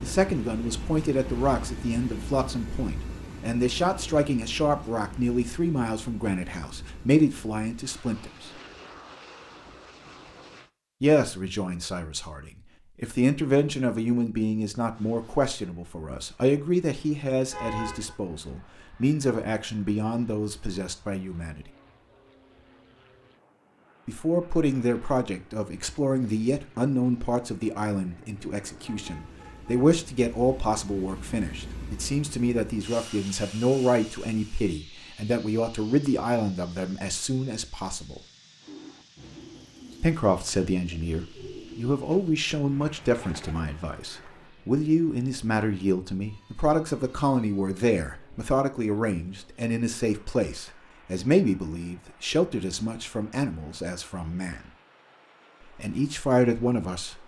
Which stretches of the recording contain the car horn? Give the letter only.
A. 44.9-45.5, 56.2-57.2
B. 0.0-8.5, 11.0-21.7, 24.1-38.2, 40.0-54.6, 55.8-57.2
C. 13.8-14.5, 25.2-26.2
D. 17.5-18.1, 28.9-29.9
D.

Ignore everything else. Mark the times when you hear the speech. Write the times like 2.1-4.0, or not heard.
0.0-8.5, 11.0-21.7, 24.1-38.2, 40.0-54.6, 55.8-57.2.